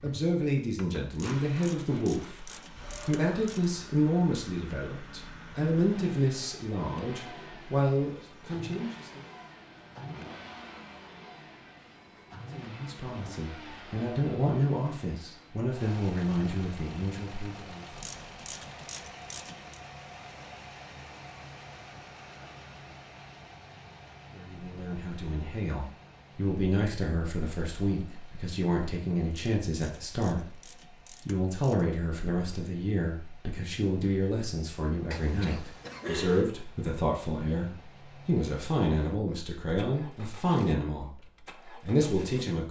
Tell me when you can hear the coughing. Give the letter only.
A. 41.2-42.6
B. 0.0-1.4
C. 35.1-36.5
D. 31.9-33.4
C.